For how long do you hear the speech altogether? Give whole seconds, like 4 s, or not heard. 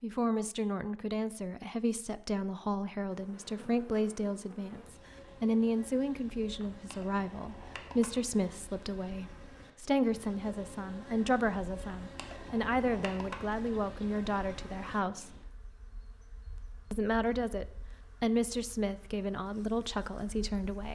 19 s.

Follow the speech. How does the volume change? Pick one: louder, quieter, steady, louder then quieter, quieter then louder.
steady.